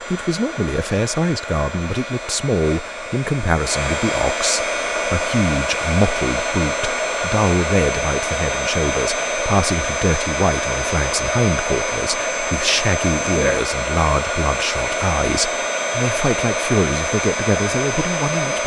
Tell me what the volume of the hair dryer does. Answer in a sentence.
The volume of the hair dryer goes up.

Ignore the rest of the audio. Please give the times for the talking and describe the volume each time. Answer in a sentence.
The talking can be heard from 0.1 to 18.6 s, at a steady volume.